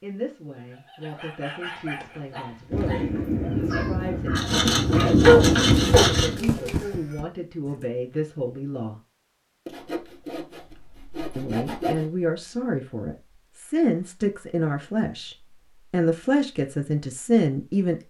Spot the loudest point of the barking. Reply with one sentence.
The loudest moment of the barking is at 5 seconds.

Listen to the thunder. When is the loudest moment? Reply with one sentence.
The volume of the thunder peaks at 5 seconds.